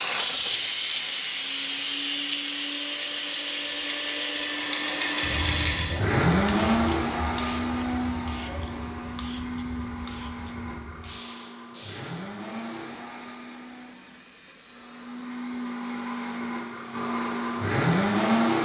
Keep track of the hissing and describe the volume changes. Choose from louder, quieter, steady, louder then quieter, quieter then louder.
quieter.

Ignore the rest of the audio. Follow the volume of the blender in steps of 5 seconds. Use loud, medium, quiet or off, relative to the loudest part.
medium, loud, quiet, loud.